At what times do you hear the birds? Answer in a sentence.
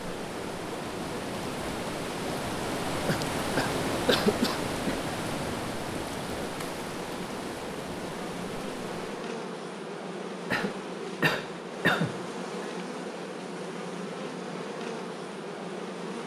The birds can't be heard in this clip.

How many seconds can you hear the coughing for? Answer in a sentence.
The coughing can be heard for 4 seconds in total.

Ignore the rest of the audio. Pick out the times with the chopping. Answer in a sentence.
You can't hear the chopping here.